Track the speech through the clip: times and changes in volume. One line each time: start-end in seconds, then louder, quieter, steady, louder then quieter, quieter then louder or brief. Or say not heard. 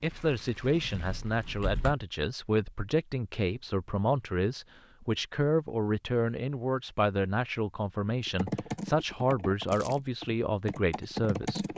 0.0-11.7 steady.